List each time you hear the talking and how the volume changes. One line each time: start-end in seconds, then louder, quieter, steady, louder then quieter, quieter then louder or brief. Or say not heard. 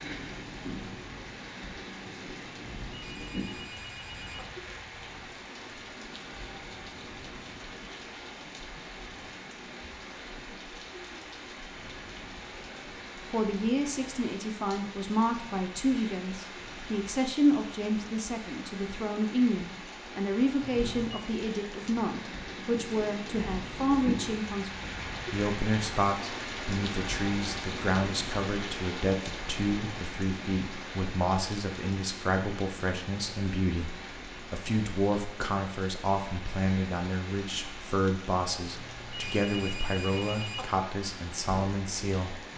13.3-42.4 steady.